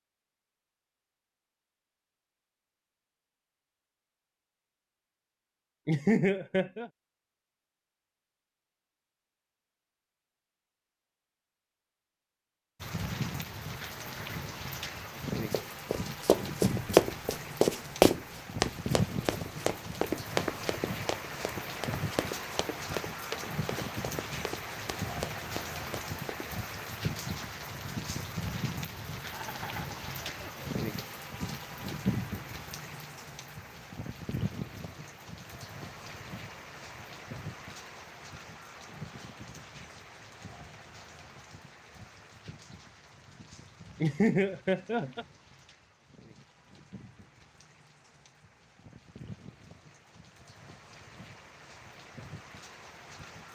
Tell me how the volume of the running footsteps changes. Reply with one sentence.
The loudness of the running footsteps goes down.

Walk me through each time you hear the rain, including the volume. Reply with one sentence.
You can hear the rain from 12.8 to 53.4 s, getting quieter.